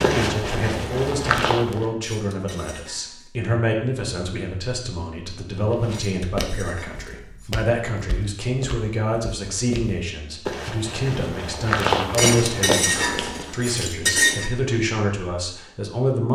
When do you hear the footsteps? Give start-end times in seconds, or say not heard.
0.0-1.9, 5.5-13.7.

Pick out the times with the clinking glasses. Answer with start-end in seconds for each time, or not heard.
2.0-3.3, 5.9-7.7, 12.2-14.5.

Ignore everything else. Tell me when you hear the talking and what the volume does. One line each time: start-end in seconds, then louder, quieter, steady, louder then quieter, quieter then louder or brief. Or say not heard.
0.0-16.2 steady.